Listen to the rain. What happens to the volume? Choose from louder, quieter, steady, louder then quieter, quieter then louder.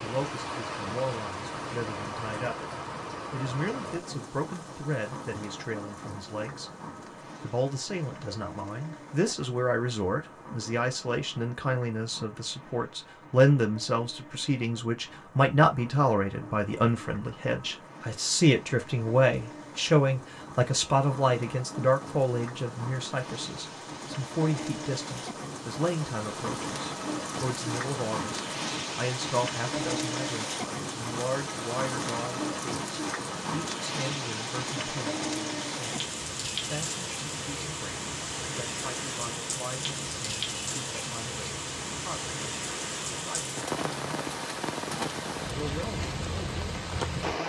quieter then louder.